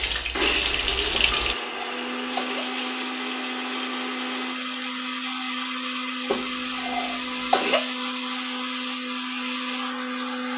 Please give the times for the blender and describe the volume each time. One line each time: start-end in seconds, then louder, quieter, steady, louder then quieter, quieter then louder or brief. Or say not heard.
0.3-10.5 steady.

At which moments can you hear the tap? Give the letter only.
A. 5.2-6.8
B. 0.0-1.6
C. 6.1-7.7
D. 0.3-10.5
B.